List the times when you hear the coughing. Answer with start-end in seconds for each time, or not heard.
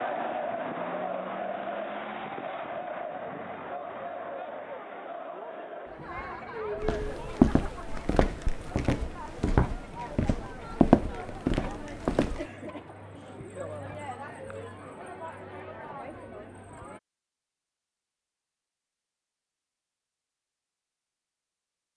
not heard.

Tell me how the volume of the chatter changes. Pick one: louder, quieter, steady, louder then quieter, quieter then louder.
quieter.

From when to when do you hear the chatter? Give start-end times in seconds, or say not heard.
0.0-17.0.